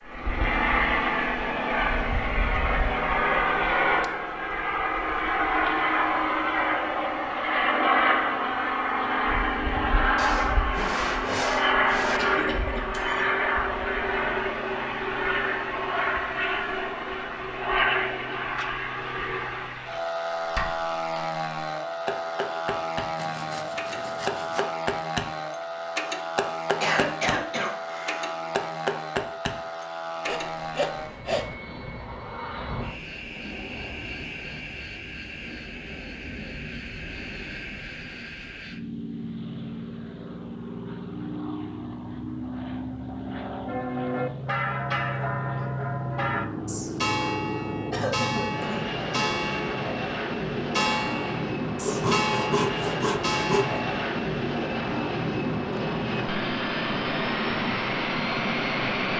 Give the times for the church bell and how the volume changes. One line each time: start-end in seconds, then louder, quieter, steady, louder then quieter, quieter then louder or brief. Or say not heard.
43.6-54.0 steady.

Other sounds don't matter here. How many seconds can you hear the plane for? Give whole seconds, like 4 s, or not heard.
59 s.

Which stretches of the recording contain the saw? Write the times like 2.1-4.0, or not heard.
10.2-12.2, 23.1-24.7, 30.2-31.6, 51.8-53.8.